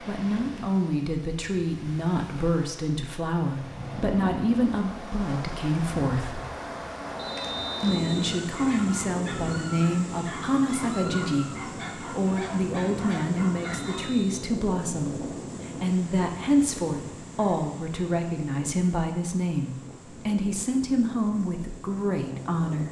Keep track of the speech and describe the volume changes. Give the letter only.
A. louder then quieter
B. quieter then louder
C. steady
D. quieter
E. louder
C.